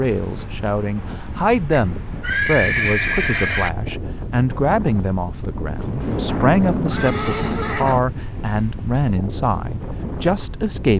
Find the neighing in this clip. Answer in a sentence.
You can hear the neighing from 1.7 to 3.7 s and from 6.0 to 8.0 s.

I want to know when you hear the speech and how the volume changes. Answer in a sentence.
The speech can be heard from 0.0 to 10.9 s, at a steady volume.